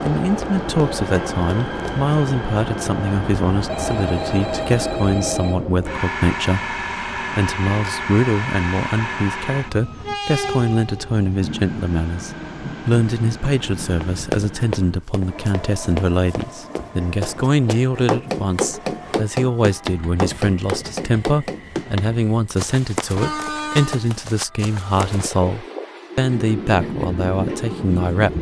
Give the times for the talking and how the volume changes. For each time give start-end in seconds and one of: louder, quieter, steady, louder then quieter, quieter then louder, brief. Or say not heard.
0.0-28.3 steady.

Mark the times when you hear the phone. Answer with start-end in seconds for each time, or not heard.
3.6-5.7.